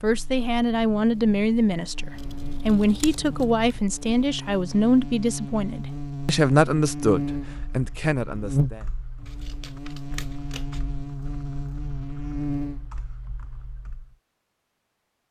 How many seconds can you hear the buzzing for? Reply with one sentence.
The buzzing can be heard for 13 seconds in total.